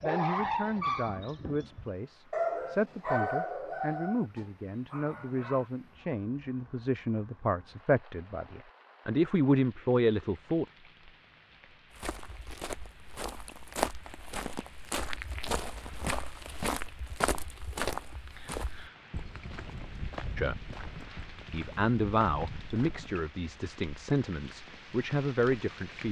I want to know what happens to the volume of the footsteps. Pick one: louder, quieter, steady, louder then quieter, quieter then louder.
quieter.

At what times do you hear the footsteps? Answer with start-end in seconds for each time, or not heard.
11.9-23.1.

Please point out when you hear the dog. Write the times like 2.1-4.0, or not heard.
0.0-5.7.